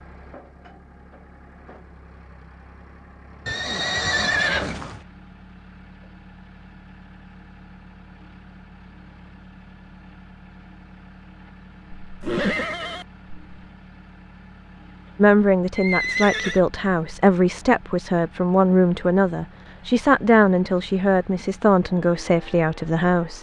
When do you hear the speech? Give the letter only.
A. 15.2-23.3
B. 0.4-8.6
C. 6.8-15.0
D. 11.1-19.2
A.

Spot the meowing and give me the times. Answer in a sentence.
You can't hear the meowing here.